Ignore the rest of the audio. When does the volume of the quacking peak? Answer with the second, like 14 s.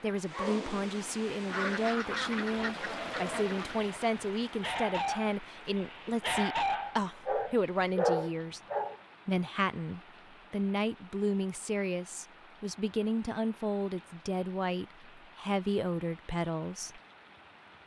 2 s.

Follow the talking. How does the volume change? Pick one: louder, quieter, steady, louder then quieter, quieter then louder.
steady.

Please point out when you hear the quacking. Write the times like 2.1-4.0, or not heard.
1.4-3.8.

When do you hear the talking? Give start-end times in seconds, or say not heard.
0.0-8.6, 9.2-17.0.